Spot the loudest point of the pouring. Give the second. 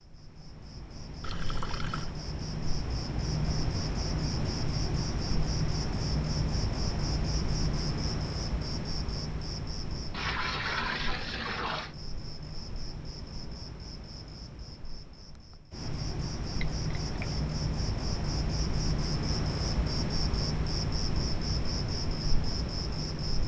11 s.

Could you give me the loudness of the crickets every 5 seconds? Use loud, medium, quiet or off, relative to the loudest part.
loud, loud, medium, loud, loud.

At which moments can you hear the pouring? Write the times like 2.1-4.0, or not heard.
1.2-2.1, 10.1-11.9, 16.8-17.4.